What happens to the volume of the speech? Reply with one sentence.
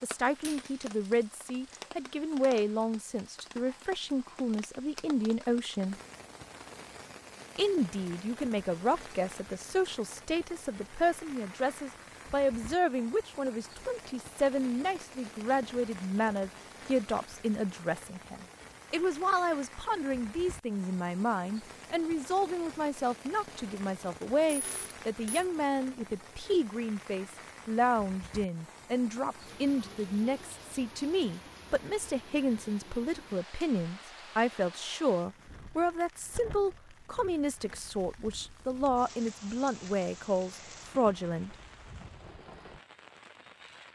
The volume of the speech stays about the same.